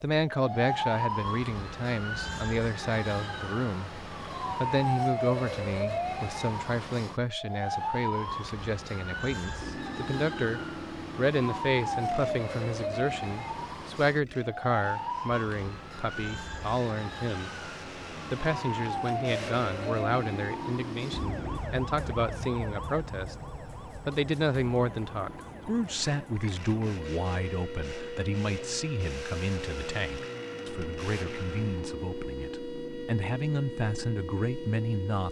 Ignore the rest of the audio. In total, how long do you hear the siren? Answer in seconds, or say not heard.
35 s.